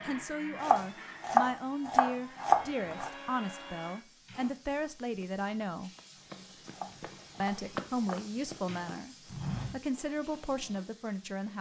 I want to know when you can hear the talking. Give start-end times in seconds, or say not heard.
0.0-5.9, 7.4-11.5.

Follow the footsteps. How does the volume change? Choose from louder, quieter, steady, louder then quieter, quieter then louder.
louder.